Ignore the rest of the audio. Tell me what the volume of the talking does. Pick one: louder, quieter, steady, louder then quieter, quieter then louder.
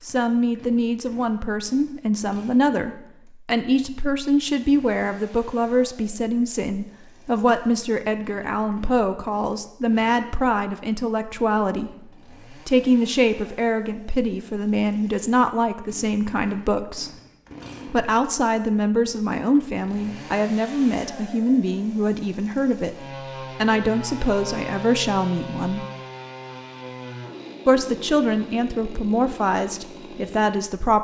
steady.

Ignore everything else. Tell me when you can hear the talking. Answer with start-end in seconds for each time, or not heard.
0.0-17.1, 17.9-25.9, 27.6-31.0.